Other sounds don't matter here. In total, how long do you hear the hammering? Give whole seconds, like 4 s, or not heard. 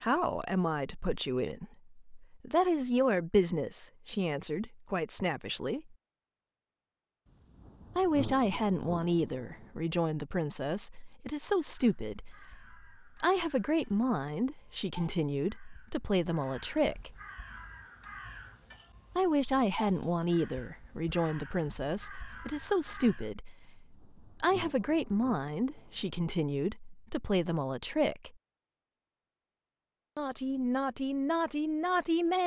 not heard.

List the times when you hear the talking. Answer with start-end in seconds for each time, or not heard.
0.0-6.0, 8.0-17.1, 19.1-28.3, 30.1-32.4.